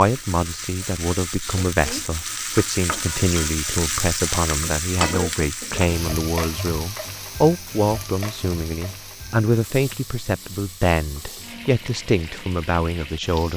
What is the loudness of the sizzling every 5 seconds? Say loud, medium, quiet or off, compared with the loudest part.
loud, loud, medium.